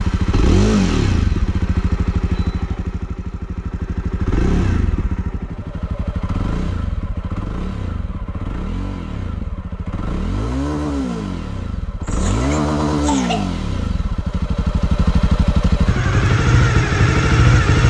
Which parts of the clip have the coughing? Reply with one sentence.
The coughing can be heard from 12.0 to 13.6 s.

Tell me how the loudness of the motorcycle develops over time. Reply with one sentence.
The loudness of the motorcycle goes down, then up.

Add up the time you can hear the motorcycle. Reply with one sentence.
You can hear the motorcycle for 18 seconds altogether.